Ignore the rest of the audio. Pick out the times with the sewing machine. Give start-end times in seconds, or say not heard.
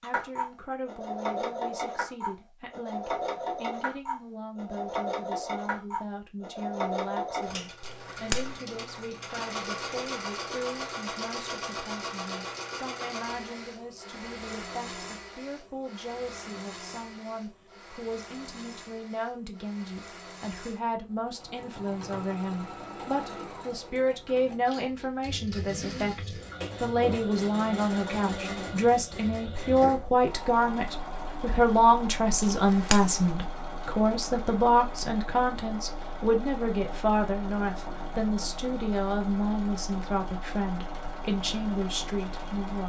0.0-42.8.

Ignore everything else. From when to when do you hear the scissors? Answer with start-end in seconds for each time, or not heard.
7.8-8.6, 32.4-33.4.